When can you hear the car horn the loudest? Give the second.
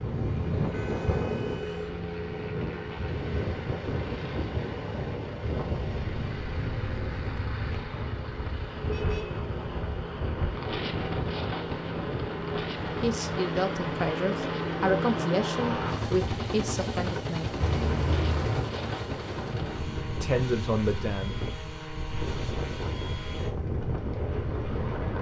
18 s.